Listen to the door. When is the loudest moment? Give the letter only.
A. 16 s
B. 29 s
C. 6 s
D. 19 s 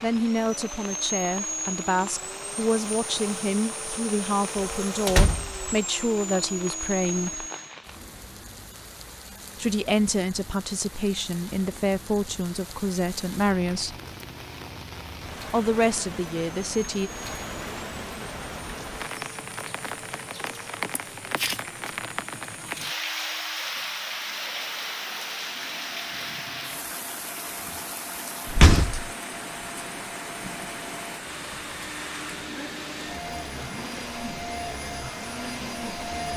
B.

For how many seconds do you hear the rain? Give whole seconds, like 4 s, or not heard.
36 s.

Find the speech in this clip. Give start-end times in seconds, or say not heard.
0.0-7.5, 9.6-13.9, 15.5-17.1.